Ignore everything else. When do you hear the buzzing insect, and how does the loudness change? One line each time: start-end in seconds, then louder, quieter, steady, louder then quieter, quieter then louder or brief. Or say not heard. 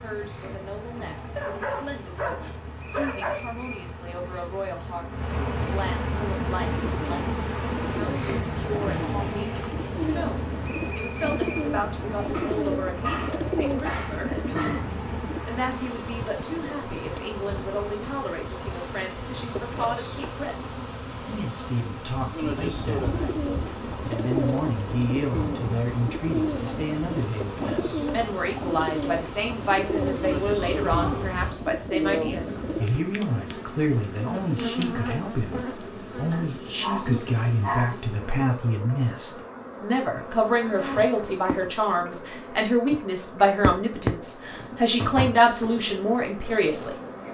0.0-47.2 steady.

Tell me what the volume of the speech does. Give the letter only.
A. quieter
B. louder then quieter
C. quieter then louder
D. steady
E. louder
E.